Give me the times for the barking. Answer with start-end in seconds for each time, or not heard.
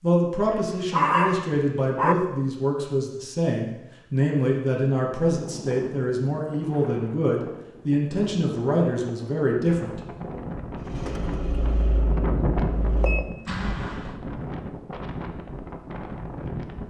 0.4-2.1.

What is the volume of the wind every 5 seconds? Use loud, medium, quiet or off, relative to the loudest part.
off, medium, loud, loud.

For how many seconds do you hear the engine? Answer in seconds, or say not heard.
3 s.